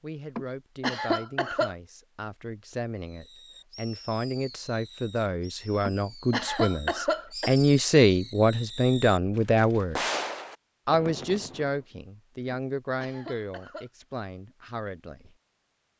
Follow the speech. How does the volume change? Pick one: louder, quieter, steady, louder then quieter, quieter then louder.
louder then quieter.